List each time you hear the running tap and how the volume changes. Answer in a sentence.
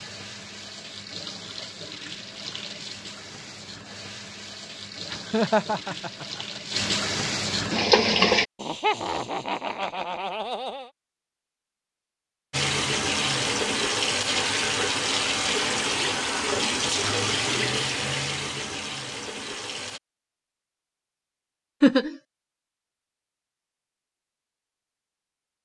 The running tap can be heard from 0.0 to 8.4 s, getting louder; and from 12.5 to 20.0 s, getting quieter.